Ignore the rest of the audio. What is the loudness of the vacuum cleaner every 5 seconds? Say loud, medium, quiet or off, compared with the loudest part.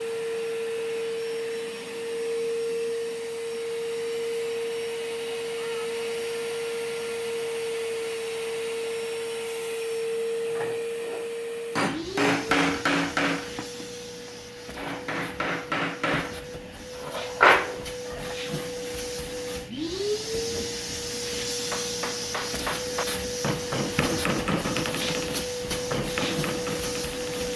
loud, loud, loud, medium, loud, loud.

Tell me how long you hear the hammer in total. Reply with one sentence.
You can hear the hammer for 14 seconds altogether.